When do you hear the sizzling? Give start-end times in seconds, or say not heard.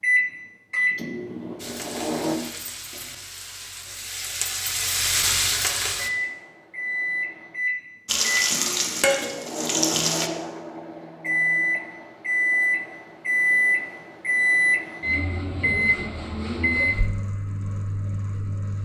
1.6-6.1, 8.1-10.3.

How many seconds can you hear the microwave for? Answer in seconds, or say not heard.
15 s.